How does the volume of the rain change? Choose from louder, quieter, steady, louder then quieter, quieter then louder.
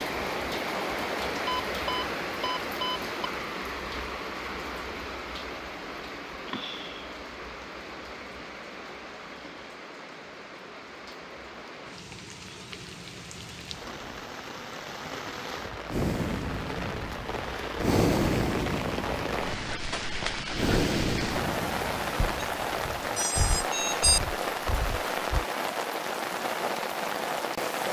quieter then louder.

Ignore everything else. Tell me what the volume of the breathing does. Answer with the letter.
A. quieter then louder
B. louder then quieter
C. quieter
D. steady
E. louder
C.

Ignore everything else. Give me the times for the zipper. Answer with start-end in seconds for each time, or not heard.
not heard.